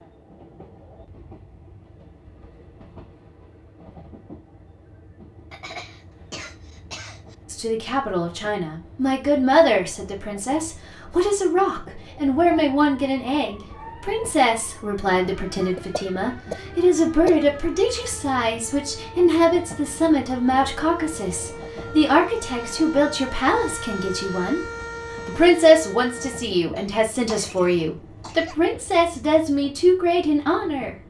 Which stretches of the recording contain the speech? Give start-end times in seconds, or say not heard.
7.5-24.6, 25.2-30.9.